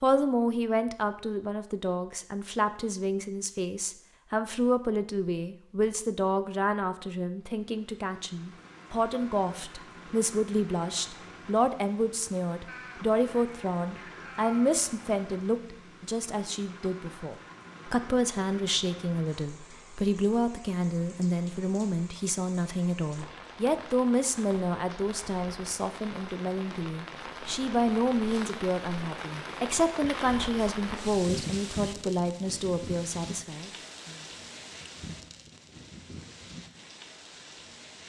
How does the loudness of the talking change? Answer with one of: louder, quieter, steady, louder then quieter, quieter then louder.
steady.